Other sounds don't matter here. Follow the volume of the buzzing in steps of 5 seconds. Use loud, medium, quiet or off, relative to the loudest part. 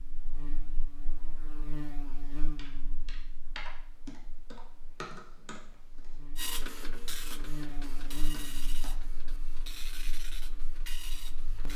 loud, loud, medium.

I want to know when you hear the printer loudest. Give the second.
7 s.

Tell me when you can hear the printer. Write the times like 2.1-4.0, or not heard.
6.3-11.7.